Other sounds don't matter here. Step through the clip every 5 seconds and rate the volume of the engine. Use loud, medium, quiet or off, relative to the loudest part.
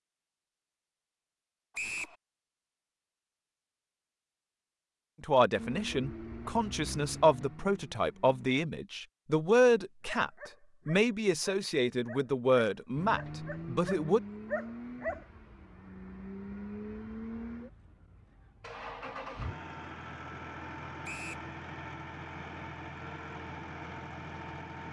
off, loud, loud, loud, loud.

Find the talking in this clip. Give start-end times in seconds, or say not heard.
5.2-14.2.